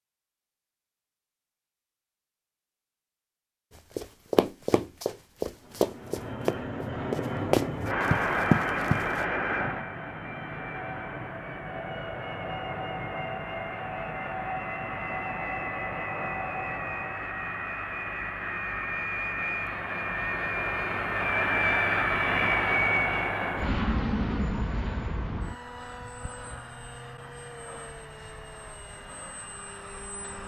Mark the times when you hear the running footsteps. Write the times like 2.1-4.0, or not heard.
4.0-9.2.